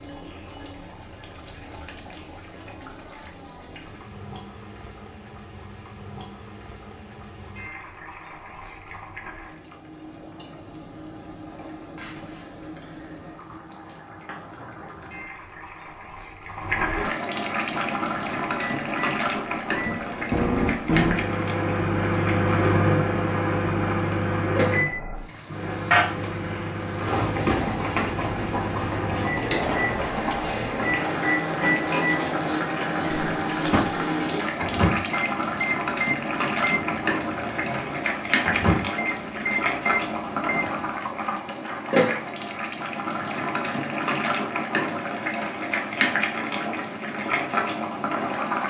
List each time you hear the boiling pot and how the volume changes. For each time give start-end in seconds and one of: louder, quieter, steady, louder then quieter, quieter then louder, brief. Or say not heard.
0.0-48.6 louder.